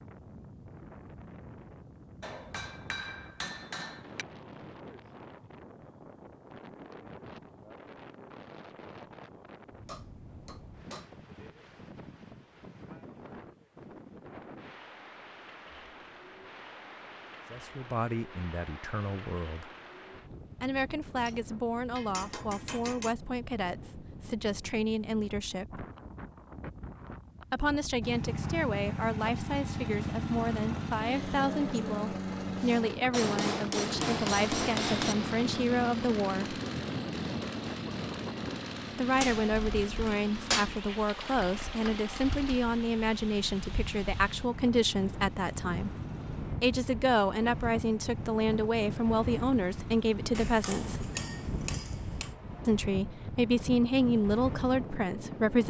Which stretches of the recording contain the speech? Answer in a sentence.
You can hear the speech from 17.5 to 19.7 s, from 20.6 to 25.9 s, from 27.5 to 36.6 s, from 39.0 to 45.9 s, from 46.6 to 51.1 s and from 52.6 to 55.6 s.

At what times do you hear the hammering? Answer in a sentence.
You can hear the hammering from 2.2 to 4.2 s, from 9.8 to 11.1 s, from 21.1 to 23.1 s, from 33.1 to 35.1 s, from 39.2 to 40.8 s and from 50.4 to 52.3 s.